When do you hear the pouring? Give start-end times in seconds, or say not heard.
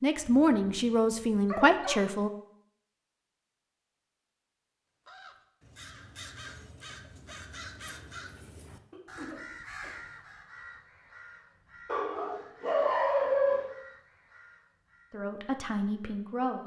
not heard.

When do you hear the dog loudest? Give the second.
13 s.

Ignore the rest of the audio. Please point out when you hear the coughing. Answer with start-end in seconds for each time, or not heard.
8.9-9.9.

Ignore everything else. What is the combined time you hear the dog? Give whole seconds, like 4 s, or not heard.
4 s.